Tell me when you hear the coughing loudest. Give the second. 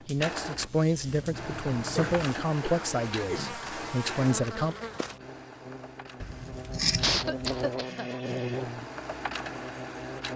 7 s.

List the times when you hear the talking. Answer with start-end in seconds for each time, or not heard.
0.1-4.8.